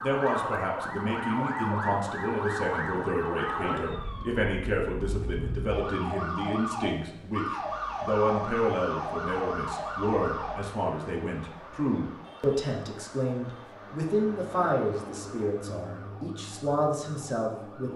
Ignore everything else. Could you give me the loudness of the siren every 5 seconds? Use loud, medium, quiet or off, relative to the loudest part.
loud, loud, medium, quiet.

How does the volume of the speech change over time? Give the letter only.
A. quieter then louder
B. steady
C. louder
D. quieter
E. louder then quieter
B.